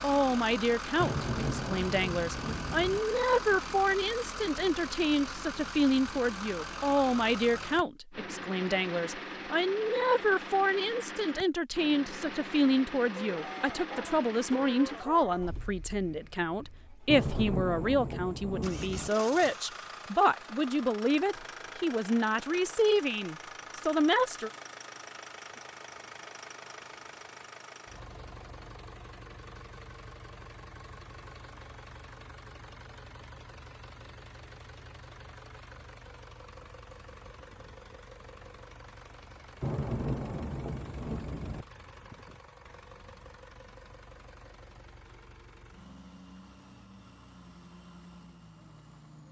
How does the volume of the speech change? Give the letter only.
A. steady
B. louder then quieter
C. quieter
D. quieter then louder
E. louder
A.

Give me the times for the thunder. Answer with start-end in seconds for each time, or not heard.
0.9-3.0, 17.1-19.1, 39.6-41.6.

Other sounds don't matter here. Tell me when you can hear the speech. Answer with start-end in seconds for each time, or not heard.
0.0-24.5.